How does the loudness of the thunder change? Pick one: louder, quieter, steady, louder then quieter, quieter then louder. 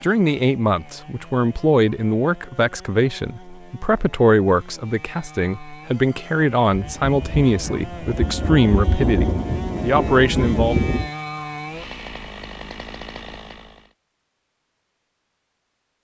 louder.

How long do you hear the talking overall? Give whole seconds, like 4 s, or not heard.
11 s.